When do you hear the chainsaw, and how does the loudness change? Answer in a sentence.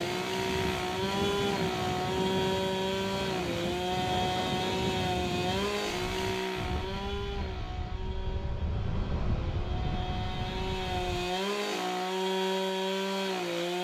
You can hear the chainsaw from 0.0 to 13.8 s, getting quieter then louder.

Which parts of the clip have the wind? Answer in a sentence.
The wind can be heard from 0.0 to 11.3 s.